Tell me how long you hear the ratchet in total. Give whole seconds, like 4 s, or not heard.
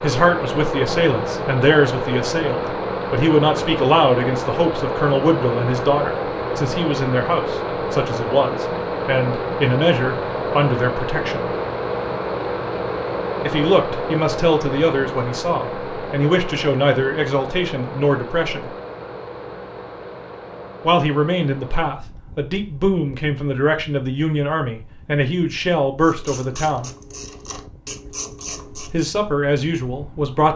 3 s.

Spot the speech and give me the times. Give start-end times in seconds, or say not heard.
0.0-11.4, 13.4-18.7, 20.8-26.9, 28.9-30.5.